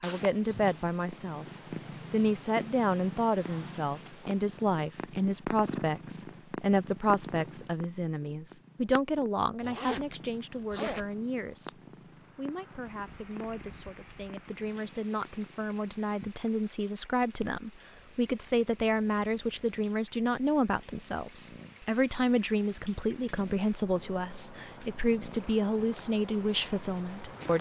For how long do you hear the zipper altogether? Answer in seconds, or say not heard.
2 s.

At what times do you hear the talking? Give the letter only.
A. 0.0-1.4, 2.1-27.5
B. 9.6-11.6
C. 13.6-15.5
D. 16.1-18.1
A.